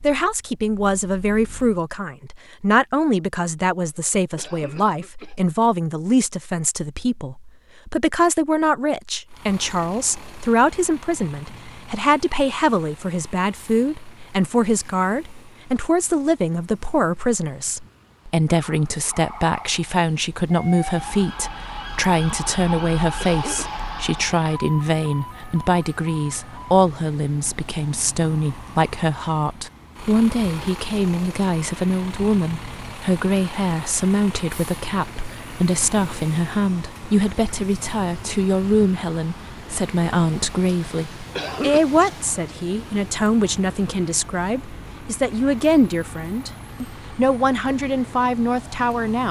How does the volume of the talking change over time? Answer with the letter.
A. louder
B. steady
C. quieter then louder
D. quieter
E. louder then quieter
B.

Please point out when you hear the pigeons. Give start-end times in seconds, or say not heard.
not heard.